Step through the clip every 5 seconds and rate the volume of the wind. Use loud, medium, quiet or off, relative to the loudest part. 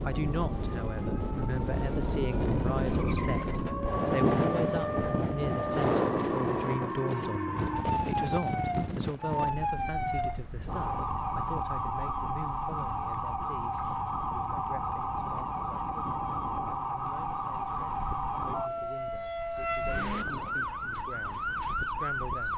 loud, loud, quiet, quiet, quiet.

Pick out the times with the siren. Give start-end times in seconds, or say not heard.
0.1-22.5.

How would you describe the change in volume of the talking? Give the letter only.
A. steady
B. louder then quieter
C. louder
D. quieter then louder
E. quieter
E.